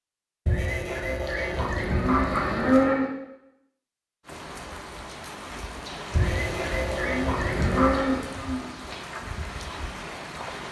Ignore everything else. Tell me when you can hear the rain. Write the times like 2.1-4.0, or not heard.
4.2-10.6.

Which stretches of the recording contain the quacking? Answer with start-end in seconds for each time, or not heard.
0.5-3.0, 6.2-8.1.